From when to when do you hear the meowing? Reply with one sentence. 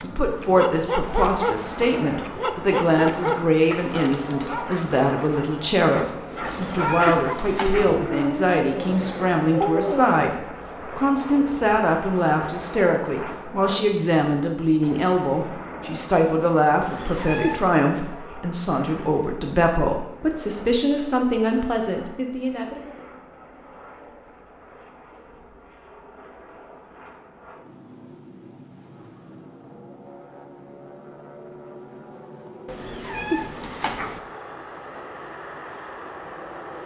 The meowing can be heard from 6.4 to 8.0 s, from 16.8 to 17.6 s and from 32.6 to 34.2 s.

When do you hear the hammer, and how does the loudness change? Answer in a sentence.
You can't hear the hammer here.